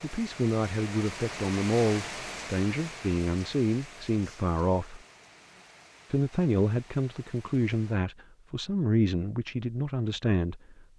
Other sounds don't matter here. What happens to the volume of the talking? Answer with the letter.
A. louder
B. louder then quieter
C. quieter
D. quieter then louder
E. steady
E.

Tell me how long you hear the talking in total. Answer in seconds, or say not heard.
10 s.